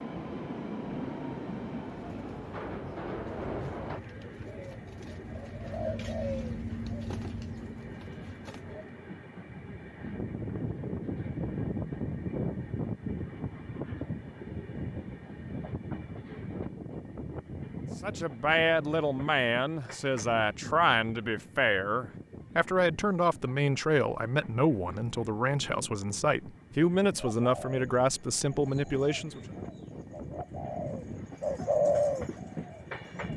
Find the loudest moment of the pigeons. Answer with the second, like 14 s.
32 s.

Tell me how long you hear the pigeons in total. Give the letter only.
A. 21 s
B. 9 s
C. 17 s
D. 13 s
D.